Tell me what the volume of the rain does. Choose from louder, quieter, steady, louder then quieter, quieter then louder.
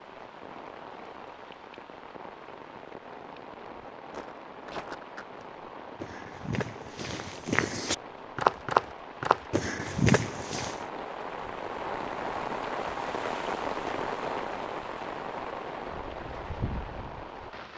louder.